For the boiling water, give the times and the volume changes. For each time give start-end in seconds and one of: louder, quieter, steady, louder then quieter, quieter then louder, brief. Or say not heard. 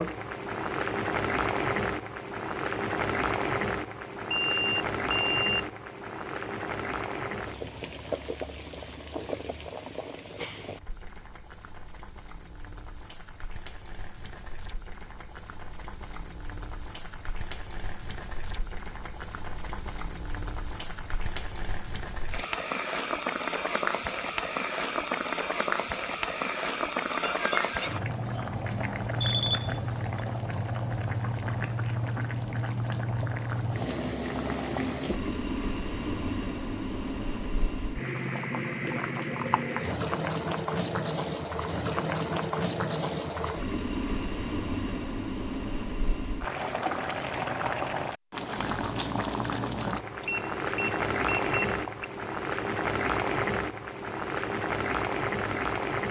0.0-56.0 quieter then louder.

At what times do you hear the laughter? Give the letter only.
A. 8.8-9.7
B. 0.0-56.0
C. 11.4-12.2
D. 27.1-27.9
D.